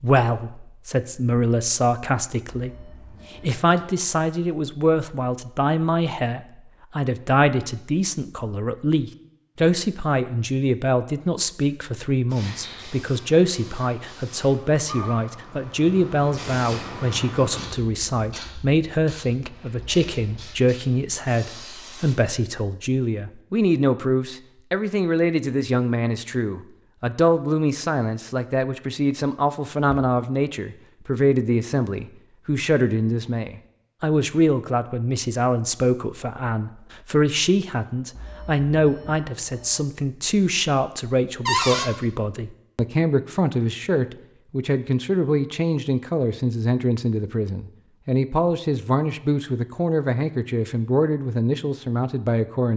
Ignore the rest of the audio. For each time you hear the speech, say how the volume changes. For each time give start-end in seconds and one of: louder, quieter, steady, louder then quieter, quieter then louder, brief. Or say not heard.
0.0-52.7 steady.